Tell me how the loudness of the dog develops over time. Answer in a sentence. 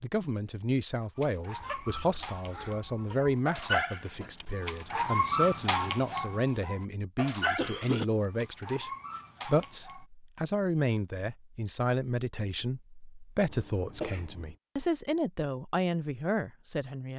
The loudness of the dog goes up, then down.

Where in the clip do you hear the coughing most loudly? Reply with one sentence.
The volume of the coughing peaks at 8 seconds.